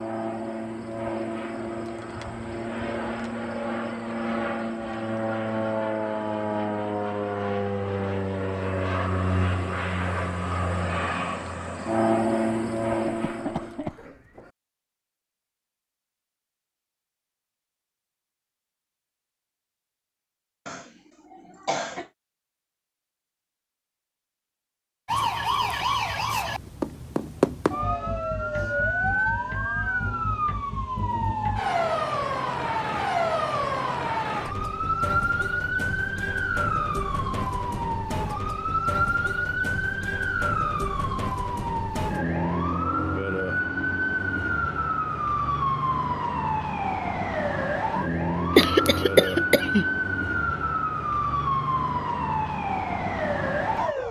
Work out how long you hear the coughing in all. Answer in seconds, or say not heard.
4 s.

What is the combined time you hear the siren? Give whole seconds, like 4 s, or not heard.
29 s.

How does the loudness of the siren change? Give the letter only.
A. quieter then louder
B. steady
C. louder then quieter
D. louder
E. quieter
B.